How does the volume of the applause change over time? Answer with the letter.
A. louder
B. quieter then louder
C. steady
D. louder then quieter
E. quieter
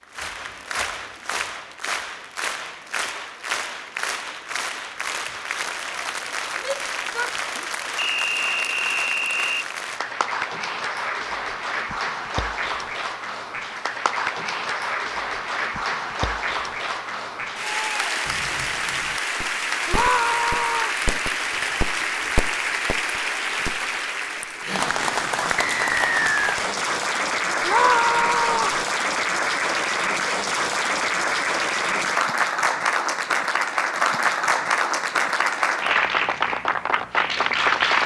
A.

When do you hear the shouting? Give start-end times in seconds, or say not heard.
6.5-7.7, 19.9-20.9, 27.6-28.8.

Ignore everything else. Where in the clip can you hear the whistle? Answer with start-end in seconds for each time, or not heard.
8.0-9.7, 25.7-26.6.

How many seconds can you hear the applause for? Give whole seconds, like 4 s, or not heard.
38 s.